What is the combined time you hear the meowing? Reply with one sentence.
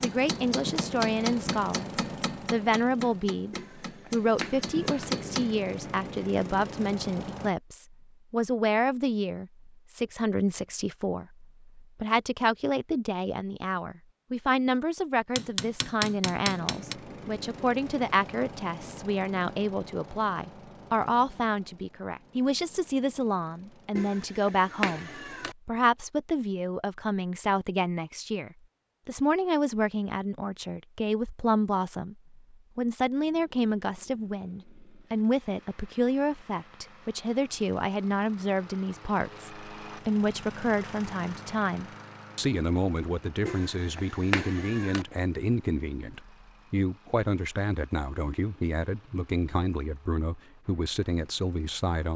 You can hear the meowing for 5 seconds altogether.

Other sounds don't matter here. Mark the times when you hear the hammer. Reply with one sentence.
The hammer can be heard from 0.0 to 5.5 s and from 15.3 to 16.9 s.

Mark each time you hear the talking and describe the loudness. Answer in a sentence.
The talking can be heard briefly from 0.0 to 1.9 s; and from 2.5 to 52.1 s, at a steady volume.